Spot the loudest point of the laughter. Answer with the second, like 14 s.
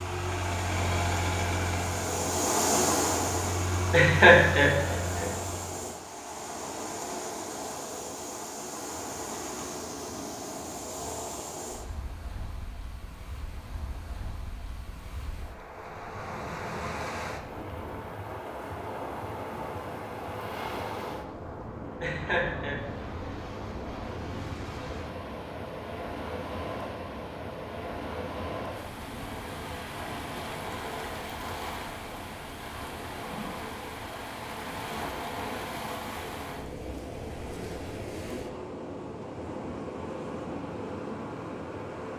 4 s.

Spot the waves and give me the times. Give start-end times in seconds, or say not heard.
0.0-42.1.